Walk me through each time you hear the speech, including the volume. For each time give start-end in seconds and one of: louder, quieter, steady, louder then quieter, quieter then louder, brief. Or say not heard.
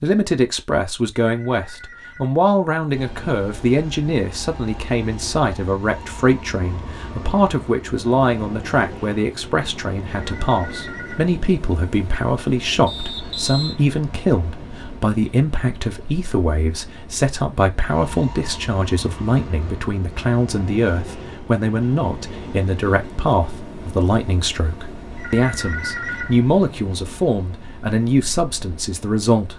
0.0-29.5 steady.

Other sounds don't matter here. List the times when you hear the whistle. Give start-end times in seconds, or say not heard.
12.8-13.8.